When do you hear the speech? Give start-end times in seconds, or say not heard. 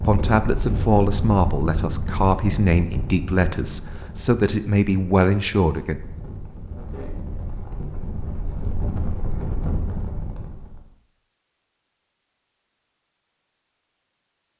0.0-6.0.